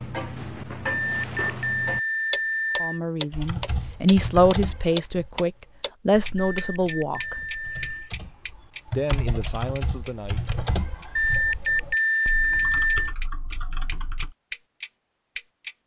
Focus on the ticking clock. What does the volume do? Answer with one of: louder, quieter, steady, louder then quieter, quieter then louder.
quieter then louder.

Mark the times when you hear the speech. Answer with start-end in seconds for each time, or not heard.
2.8-7.4, 8.8-10.4.